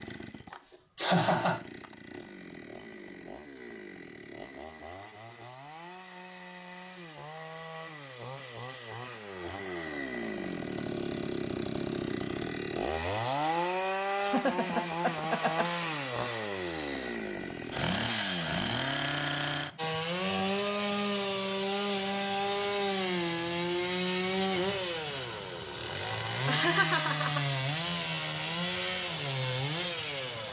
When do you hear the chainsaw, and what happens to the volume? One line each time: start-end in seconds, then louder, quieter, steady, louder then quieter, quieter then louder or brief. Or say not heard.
0.0-30.4 louder.